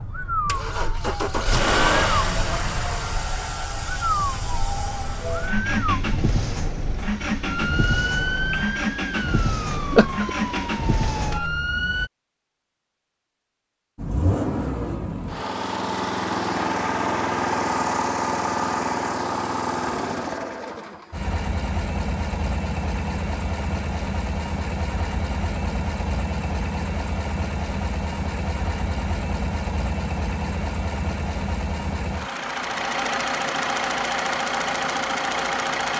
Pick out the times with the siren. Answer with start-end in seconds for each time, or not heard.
0.0-12.1.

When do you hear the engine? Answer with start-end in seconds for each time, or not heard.
0.1-11.4, 13.9-35.9.